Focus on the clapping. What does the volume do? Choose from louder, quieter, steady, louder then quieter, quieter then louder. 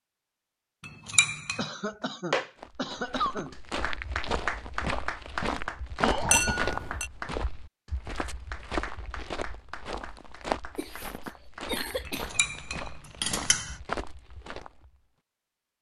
quieter.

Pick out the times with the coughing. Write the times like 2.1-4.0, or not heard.
1.6-3.5, 5.5-6.7, 10.8-12.3.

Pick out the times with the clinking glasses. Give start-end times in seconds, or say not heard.
0.8-1.6, 6.3-7.1, 12.1-13.8.